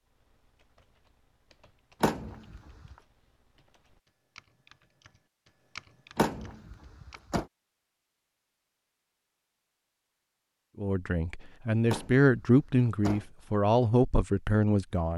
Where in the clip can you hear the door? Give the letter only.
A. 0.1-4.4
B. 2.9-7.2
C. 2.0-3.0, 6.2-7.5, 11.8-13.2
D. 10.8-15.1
C.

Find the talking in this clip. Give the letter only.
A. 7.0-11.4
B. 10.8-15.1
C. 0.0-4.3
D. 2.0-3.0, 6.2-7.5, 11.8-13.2
B.